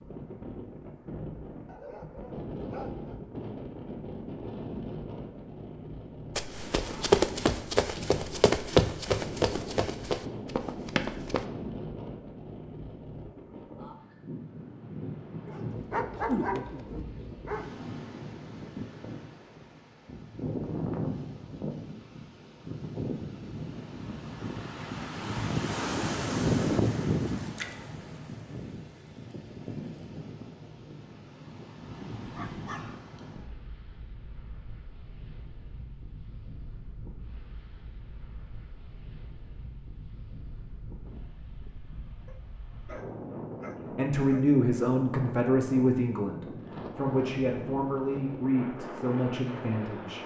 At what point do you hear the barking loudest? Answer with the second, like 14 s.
16 s.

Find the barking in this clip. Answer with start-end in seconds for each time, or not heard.
1.6-3.2, 15.4-17.7, 32.2-33.0, 42.2-44.5.